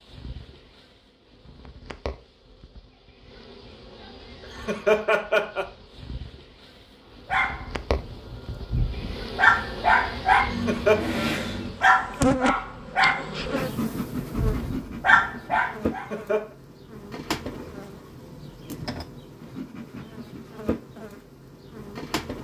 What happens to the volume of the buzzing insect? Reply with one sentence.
The loudness of the buzzing insect goes up, then down.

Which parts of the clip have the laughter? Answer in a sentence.
The laughter can be heard from 4.5 to 5.7 s, from 10.6 to 11.0 s and from 16.0 to 16.6 s.